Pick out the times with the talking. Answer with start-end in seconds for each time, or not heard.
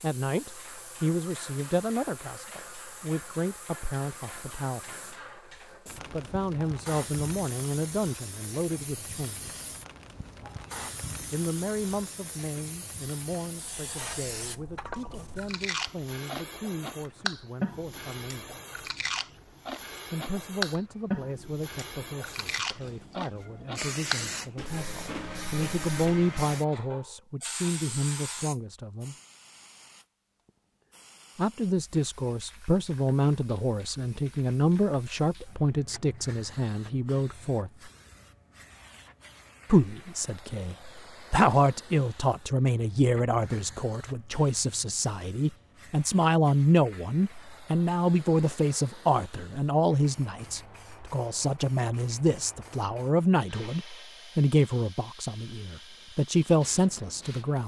0.0-5.2, 6.1-9.5, 11.3-18.4, 20.1-29.1, 31.4-37.7, 39.7-57.6.